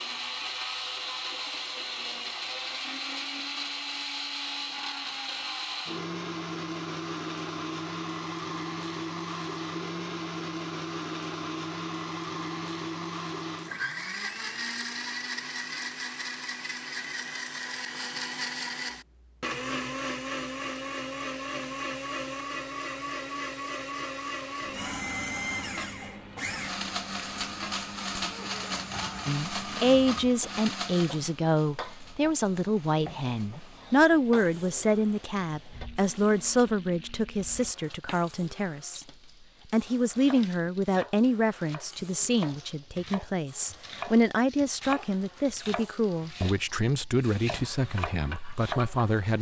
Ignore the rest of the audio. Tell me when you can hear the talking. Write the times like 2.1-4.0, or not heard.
29.2-39.0, 39.7-49.3.